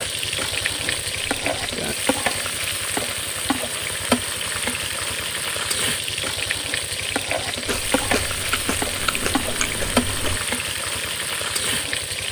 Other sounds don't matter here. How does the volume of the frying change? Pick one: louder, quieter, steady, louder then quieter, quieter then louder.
steady.